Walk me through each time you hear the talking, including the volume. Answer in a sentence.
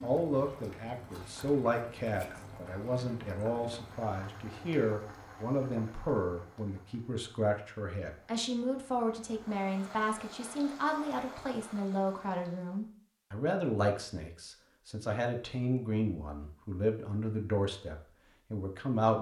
You can hear the talking from 0.0 to 19.1 s, at a steady volume.